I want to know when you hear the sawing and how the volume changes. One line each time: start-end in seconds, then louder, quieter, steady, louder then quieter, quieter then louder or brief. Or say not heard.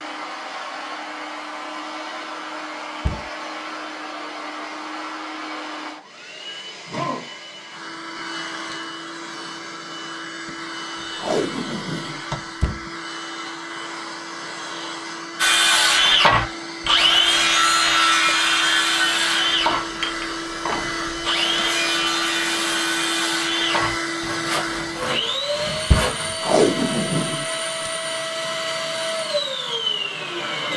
15.3-26.4 quieter.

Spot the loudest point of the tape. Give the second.
27 s.